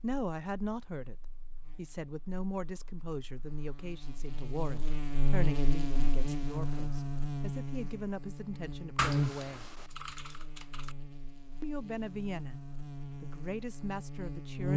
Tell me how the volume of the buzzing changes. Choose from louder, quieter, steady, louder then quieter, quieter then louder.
louder then quieter.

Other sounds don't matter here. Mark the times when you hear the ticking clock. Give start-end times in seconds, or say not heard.
not heard.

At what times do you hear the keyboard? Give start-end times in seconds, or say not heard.
8.9-10.9.